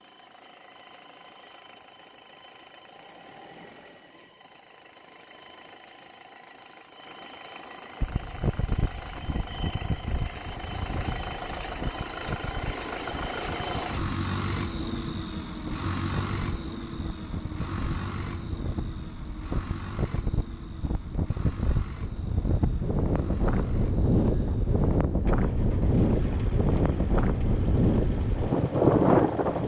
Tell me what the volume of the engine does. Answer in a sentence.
The volume of the engine goes up, then down.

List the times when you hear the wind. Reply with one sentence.
You can hear the wind from 8.0 to 29.6 s.